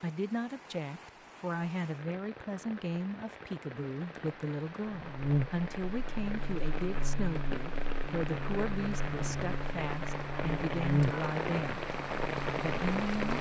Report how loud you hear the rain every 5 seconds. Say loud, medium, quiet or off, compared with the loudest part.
quiet, medium, loud.